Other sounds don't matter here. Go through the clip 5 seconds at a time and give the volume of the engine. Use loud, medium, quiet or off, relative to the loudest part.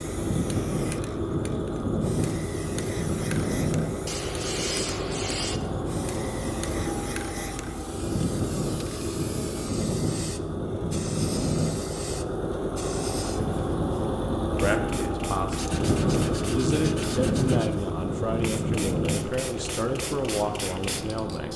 loud, loud, loud, loud, medium.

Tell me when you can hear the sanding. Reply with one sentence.
The sanding can be heard from 4.0 to 5.6 s and from 15.5 to 17.8 s.